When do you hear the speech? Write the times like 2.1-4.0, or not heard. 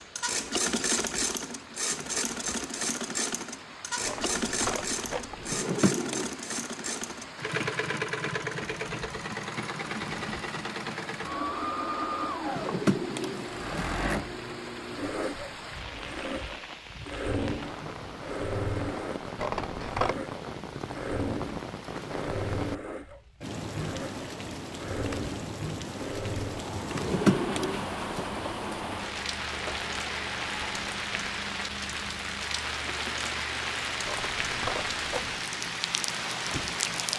not heard.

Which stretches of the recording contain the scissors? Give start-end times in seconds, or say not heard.
4.0-5.6, 19.4-20.1, 34.0-35.4.